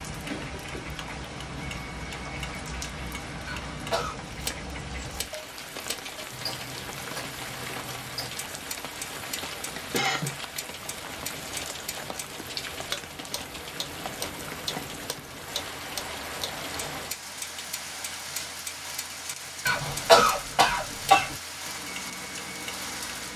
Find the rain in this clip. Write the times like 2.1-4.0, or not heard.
0.0-23.3.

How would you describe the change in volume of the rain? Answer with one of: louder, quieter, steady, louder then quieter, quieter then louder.
steady.